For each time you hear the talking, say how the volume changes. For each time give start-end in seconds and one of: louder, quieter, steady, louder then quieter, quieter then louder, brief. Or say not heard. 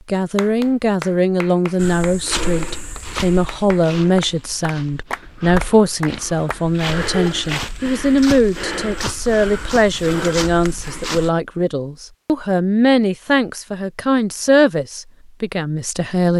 0.1-16.3 steady.